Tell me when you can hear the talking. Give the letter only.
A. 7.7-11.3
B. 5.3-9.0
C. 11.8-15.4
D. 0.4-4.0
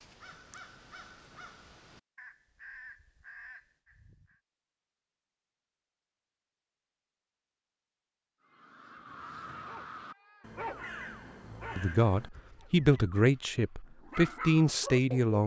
C.